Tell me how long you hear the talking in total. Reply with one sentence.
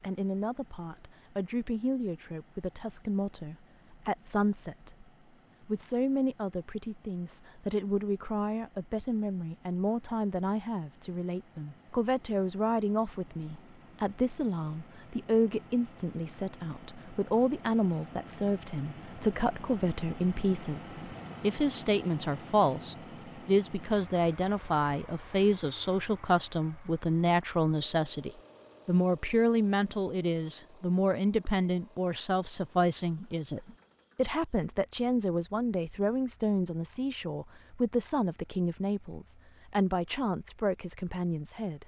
You can hear the talking for 41 seconds altogether.